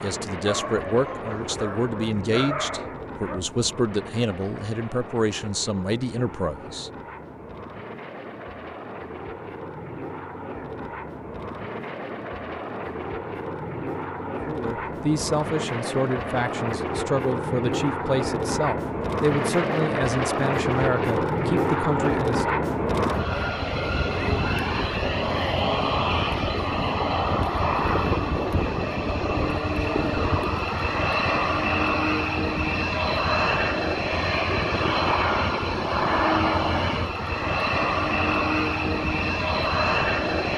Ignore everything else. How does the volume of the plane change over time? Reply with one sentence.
The loudness of the plane goes up.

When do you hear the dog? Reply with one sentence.
You can hear the dog from 0.5 to 3.4 s.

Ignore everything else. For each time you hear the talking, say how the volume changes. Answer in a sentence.
You can hear the talking from 0.0 to 6.9 s, at a steady volume; and from 14.4 to 22.6 s, at a steady volume.